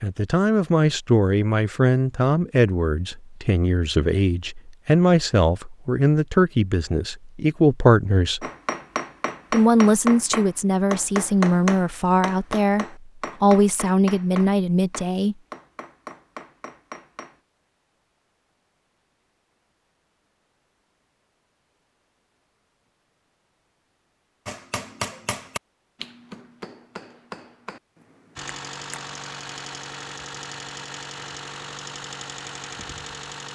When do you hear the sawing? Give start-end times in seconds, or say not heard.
not heard.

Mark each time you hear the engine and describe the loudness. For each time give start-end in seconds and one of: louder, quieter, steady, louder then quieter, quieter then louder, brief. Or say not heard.
28.4-33.4 steady.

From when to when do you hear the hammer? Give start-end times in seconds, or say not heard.
8.4-17.4, 24.4-29.1.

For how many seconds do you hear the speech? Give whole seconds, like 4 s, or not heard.
14 s.